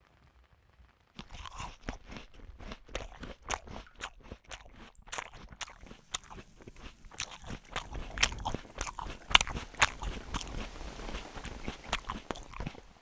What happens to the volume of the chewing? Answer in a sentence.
The volume of the chewing goes up, then down.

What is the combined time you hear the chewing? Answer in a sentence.
You can hear the chewing for 12 seconds altogether.